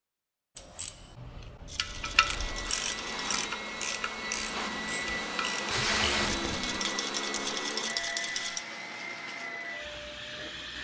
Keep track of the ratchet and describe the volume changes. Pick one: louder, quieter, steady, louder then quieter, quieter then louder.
louder then quieter.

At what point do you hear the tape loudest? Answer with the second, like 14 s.
6 s.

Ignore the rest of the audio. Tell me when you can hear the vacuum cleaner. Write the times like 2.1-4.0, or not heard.
1.9-10.7.